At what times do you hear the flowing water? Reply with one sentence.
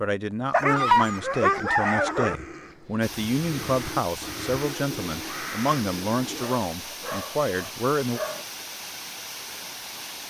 The flowing water can be heard from 3.0 to 10.2 s.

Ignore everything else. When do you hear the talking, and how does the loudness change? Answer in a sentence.
The talking can be heard from 0.0 to 8.2 s, at a steady volume.